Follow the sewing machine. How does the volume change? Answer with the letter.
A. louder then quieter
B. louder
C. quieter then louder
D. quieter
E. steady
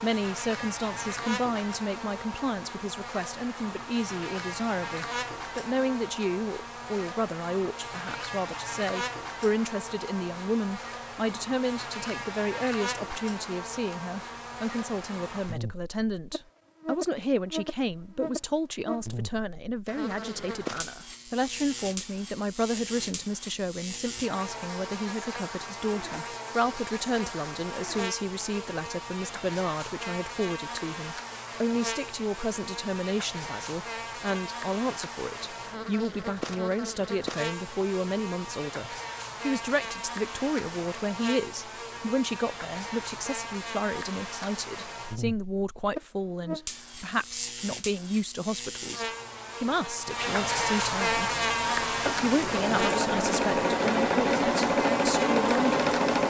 B.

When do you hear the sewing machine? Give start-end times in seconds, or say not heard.
51.4-56.2.